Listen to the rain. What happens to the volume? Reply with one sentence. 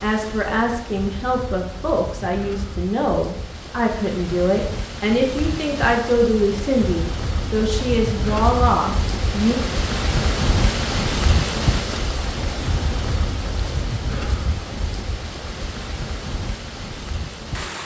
The volume of the rain goes up, then down.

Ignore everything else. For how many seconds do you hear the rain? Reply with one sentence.
The rain can be heard for 18 seconds in total.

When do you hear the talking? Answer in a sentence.
The talking can be heard from 0.0 to 9.6 s.